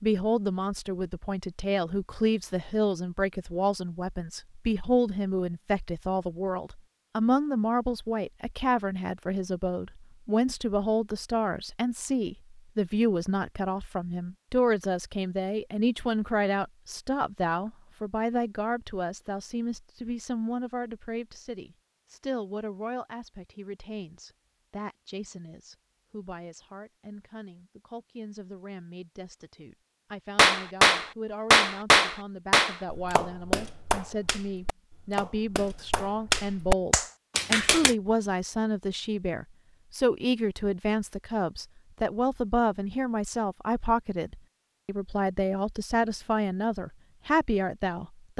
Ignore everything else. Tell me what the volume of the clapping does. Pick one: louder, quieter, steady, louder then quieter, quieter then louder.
quieter then louder.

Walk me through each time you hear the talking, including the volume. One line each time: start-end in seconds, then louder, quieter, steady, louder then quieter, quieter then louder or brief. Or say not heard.
0.0-48.3 quieter then louder.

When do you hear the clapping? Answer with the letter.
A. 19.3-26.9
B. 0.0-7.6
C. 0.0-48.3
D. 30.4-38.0
D.